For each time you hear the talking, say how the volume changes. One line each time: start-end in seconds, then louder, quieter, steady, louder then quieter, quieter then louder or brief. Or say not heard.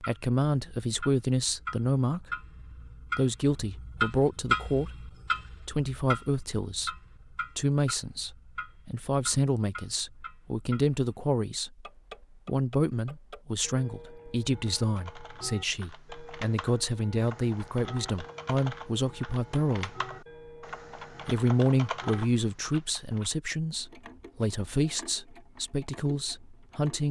0.0-2.4 brief
3.1-11.8 steady
12.4-19.9 steady
21.2-27.0 quieter.